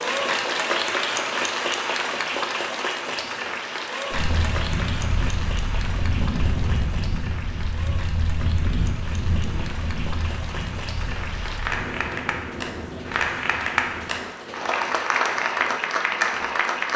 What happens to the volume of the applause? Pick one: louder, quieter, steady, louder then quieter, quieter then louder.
quieter then louder.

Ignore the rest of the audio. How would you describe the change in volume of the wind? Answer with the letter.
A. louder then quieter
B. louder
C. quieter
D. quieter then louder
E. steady
C.